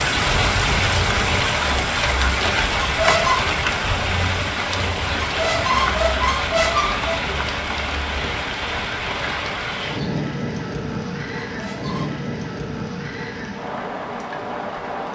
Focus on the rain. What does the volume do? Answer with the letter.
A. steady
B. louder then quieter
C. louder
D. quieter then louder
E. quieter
E.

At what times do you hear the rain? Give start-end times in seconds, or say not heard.
0.0-15.1.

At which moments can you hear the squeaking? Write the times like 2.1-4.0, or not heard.
2.8-3.5, 5.2-7.2, 11.4-12.2.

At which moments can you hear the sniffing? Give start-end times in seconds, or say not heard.
not heard.